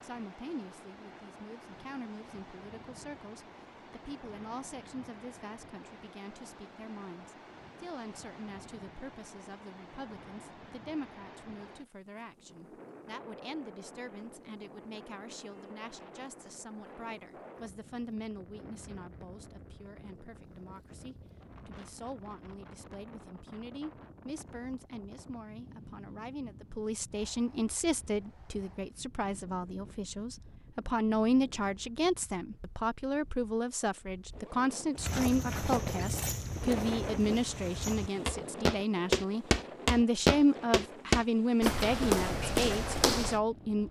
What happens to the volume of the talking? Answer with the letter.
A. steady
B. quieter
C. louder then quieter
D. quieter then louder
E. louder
E.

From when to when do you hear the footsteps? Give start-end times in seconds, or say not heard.
35.0-43.4.